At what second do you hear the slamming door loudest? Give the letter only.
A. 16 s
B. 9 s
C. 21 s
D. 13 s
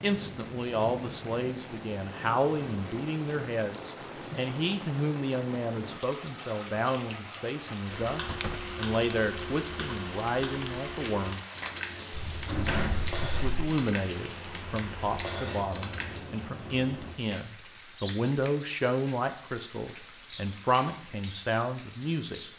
D.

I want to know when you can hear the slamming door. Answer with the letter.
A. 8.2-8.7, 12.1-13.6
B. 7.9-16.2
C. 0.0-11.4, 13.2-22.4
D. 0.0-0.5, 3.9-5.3
A.